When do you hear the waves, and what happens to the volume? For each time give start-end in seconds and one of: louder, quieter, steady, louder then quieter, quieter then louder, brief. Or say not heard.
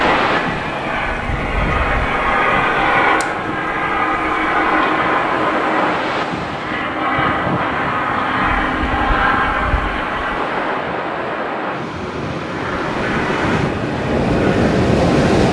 0.0-15.4 louder.